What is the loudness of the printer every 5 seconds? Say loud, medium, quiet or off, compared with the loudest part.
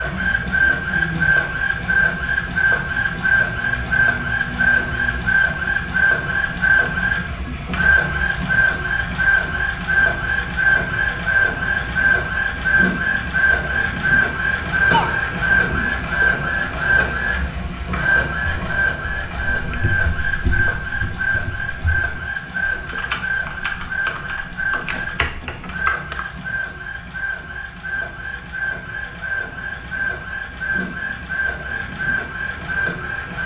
loud, loud, loud, loud, medium, medium, medium.